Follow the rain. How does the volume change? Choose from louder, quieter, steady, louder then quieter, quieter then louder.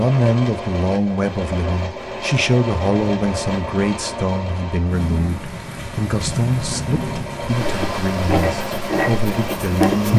louder then quieter.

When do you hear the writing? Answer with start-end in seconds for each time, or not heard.
7.5-10.1.